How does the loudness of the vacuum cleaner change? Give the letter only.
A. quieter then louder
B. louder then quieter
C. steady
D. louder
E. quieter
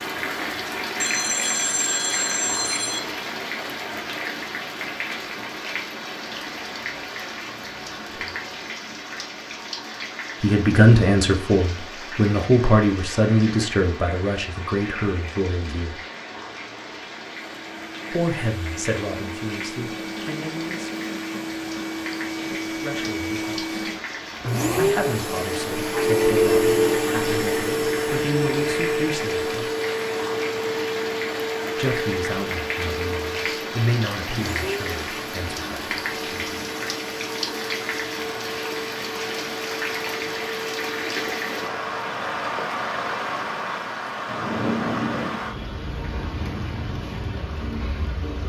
B.